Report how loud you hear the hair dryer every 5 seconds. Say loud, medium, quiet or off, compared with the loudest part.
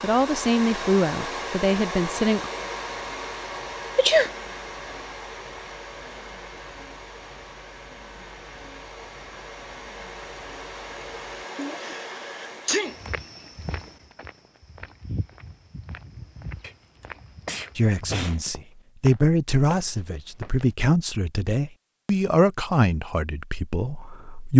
loud, medium, medium, off, off.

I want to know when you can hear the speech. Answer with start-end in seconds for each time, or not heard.
0.0-2.5, 17.8-24.5.